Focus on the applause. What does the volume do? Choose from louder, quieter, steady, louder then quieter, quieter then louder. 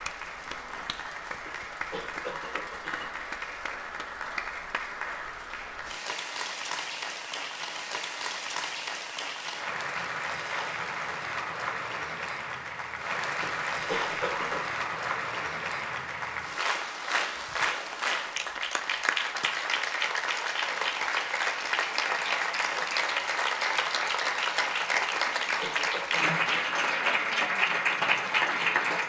louder.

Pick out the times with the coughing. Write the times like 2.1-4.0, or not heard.
1.4-3.0, 13.4-14.8, 25.1-26.8.